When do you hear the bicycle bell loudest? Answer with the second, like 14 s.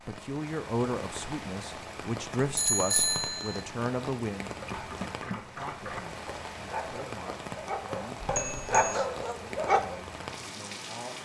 3 s.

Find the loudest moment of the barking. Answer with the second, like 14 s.
9 s.